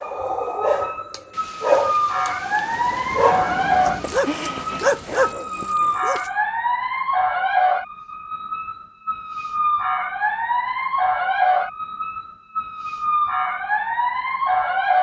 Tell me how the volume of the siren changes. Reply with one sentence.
The volume of the siren stays about the same.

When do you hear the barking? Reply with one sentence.
The barking can be heard from 0.0 to 6.3 s.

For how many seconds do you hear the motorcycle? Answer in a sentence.
The motorcycle can't be heard in this clip.